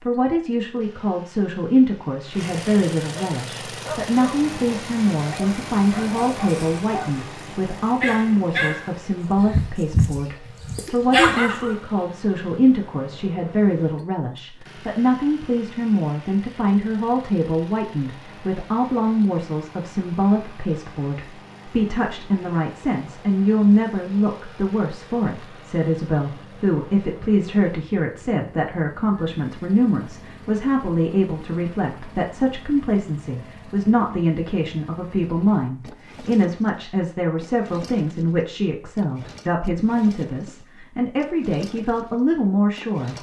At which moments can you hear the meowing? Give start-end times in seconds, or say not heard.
not heard.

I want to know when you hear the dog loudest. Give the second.
11 s.